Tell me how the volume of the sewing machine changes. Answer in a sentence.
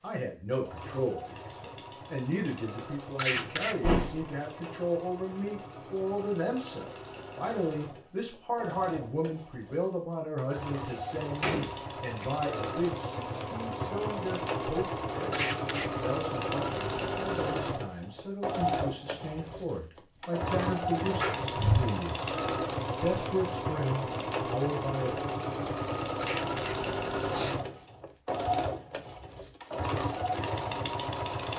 The loudness of the sewing machine goes up.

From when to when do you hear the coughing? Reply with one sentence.
You can hear the coughing from 3.1 to 4.0 s, from 15.3 to 16.1 s and from 26.2 to 27.6 s.